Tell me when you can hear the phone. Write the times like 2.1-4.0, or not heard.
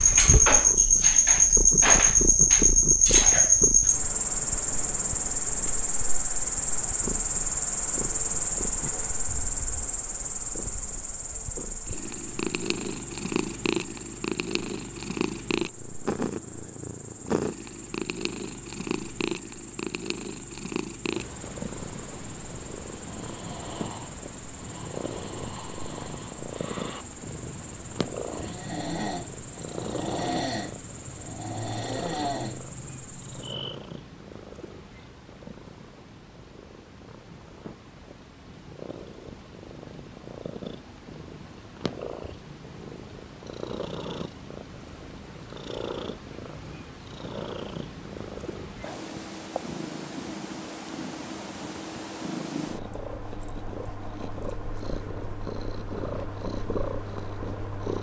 not heard.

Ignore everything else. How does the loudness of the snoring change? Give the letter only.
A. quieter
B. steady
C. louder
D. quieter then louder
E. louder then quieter
C.